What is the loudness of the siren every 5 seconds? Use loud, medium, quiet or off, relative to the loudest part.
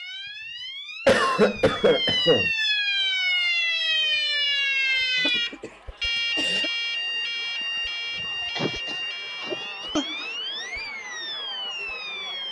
loud, loud, medium.